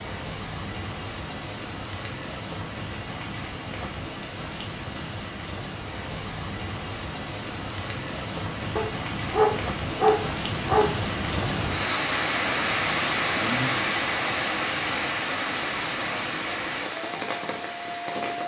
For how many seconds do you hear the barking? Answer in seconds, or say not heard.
2 s.